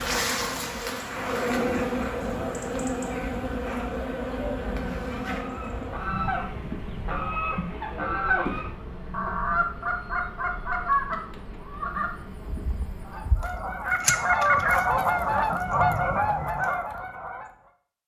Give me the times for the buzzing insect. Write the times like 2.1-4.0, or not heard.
0.0-13.3.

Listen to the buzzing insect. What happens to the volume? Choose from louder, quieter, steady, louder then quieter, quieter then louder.
quieter.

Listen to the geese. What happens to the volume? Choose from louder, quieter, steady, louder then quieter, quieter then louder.
louder.